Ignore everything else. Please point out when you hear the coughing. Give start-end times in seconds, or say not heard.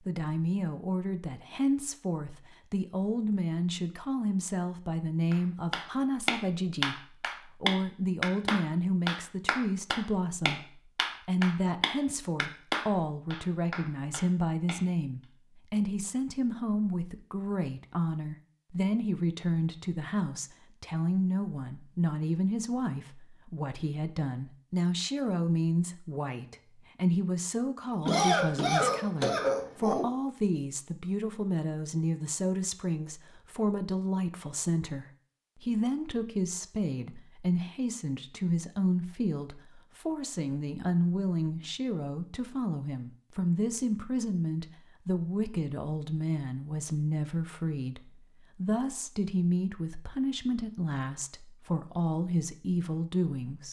28.1-30.1.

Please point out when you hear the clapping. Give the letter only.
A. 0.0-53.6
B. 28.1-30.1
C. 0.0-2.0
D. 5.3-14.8
D.